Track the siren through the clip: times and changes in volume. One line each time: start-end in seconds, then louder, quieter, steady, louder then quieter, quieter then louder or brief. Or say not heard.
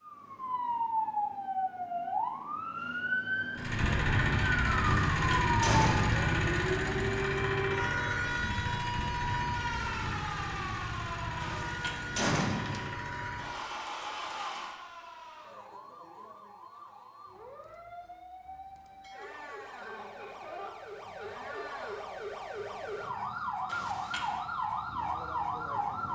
0.0-26.1 quieter then louder.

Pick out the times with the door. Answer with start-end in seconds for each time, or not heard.
5.1-6.2, 11.4-12.9, 23.6-24.4.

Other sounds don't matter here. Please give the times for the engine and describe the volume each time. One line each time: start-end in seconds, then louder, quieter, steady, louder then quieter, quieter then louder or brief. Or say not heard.
3.5-14.8 quieter.